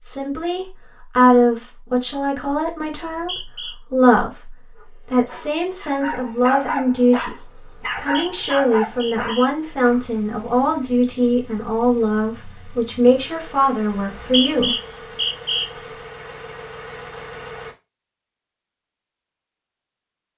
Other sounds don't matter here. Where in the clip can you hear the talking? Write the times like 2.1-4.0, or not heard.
0.0-14.8.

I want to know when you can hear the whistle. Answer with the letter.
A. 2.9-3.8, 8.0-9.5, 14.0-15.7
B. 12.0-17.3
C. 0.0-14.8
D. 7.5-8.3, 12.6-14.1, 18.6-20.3
A.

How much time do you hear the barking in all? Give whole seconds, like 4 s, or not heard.
5 s.